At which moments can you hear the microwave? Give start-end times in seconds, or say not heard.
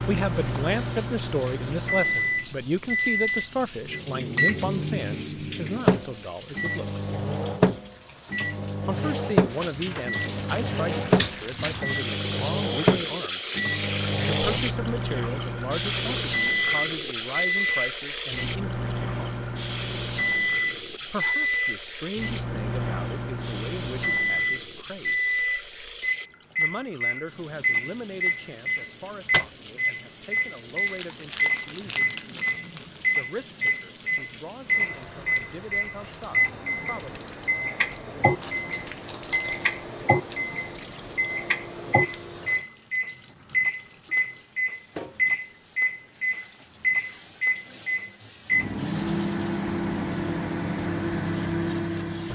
0.0-52.3.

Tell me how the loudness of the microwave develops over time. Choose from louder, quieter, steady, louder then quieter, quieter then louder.
steady.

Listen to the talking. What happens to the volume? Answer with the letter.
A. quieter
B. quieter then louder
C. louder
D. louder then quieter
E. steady
A.